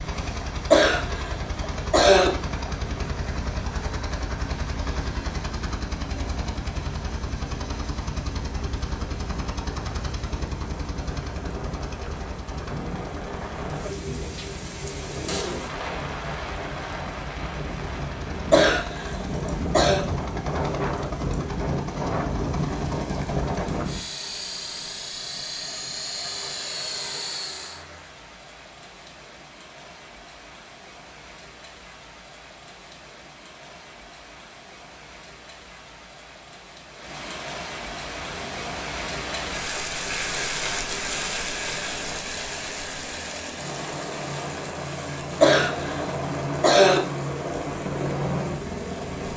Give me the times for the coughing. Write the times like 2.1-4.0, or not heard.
0.7-2.3, 18.5-20.1, 45.4-47.0.